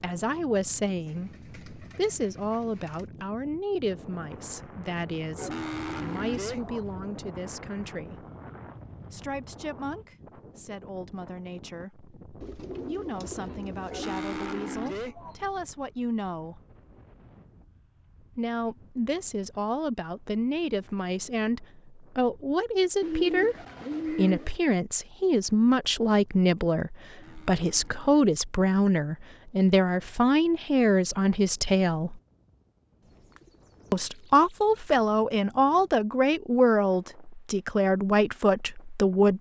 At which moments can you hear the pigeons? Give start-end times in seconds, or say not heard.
1.1-3.0, 12.4-14.4, 23.0-24.6, 33.0-34.8.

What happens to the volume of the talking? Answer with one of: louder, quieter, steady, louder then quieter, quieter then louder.
quieter then louder.